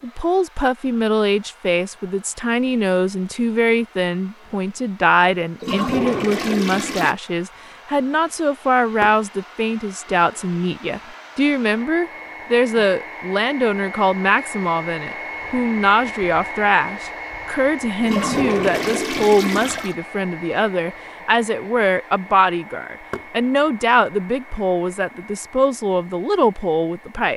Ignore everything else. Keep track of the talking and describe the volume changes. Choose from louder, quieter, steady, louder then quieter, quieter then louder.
steady.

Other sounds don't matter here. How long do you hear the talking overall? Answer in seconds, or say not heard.
27 s.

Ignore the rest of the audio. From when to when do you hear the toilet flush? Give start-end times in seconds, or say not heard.
5.6-7.2, 18.0-19.9.